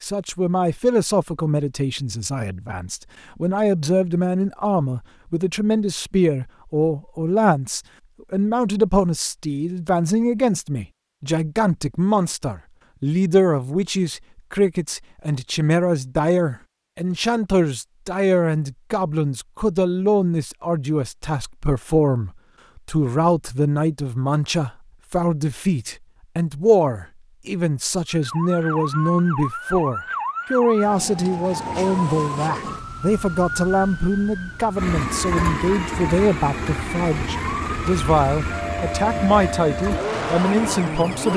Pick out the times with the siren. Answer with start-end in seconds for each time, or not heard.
28.1-41.3.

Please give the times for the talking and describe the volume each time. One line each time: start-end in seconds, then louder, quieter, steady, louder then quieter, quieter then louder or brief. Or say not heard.
0.0-41.3 steady.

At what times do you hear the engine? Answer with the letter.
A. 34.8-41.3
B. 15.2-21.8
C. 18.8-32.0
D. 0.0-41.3
A.